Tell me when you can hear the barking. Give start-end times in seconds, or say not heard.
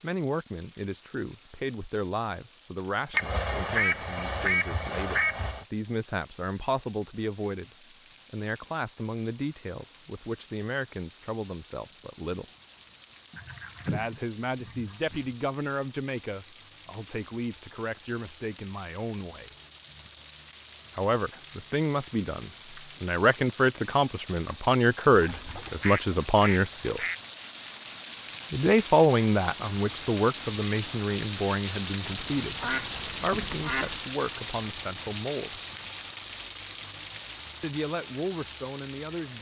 not heard.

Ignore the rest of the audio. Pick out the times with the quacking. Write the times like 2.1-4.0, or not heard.
3.1-5.7, 13.3-15.3, 25.1-27.2, 32.0-34.0.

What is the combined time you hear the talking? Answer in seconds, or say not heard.
32 s.